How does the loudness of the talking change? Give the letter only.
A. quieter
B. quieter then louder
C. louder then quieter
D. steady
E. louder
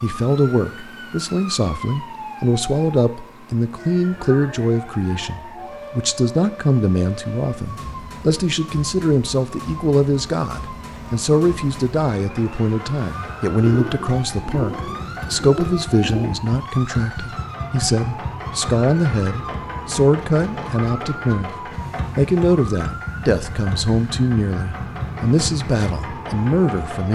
D.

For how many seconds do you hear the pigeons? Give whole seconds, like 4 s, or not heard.
3 s.